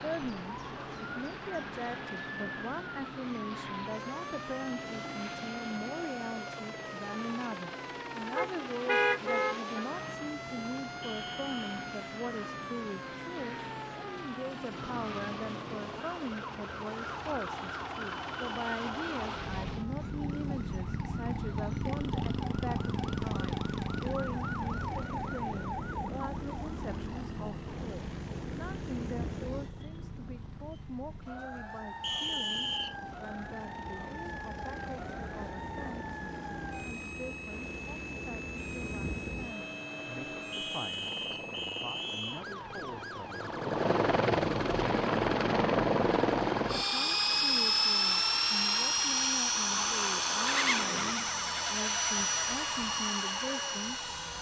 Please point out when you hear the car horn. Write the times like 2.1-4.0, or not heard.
8.3-9.8.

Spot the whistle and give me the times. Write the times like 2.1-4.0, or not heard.
11.0-11.6, 32.0-33.0, 40.5-42.5.